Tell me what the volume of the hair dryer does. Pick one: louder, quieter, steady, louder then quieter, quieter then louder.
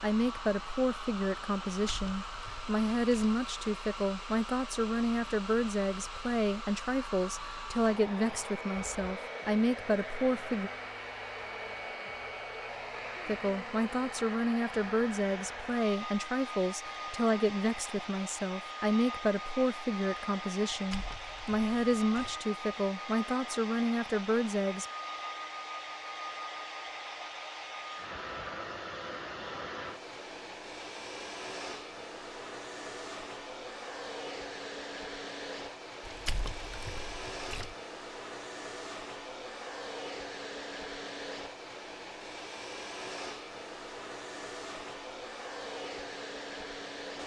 steady.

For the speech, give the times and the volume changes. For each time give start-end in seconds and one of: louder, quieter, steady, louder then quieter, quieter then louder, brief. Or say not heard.
0.0-10.7 steady
13.2-24.9 steady.